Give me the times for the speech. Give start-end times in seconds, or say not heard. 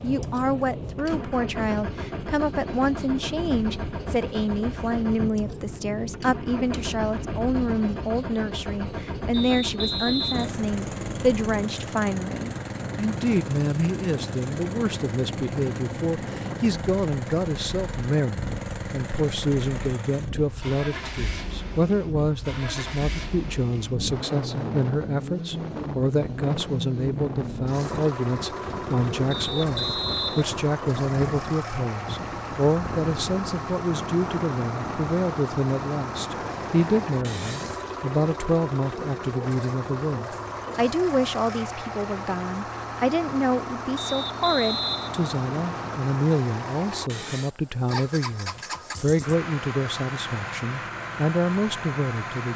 0.0-52.5.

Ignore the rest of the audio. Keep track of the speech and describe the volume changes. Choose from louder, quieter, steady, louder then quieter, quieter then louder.
steady.